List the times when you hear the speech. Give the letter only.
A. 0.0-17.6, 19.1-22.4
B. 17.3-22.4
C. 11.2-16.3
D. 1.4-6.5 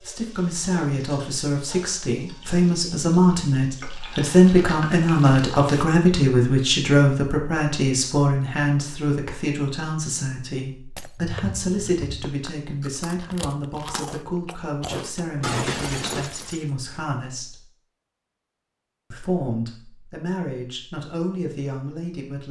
A.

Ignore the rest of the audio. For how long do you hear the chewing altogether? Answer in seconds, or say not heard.
5 s.